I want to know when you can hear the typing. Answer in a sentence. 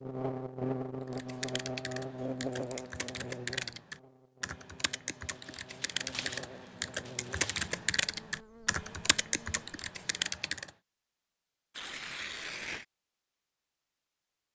You can hear the typing from 1.1 to 10.7 s.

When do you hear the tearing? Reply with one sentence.
You can hear the tearing from 2.2 to 2.8 s, from 5.2 to 7.8 s and from 11.7 to 12.8 s.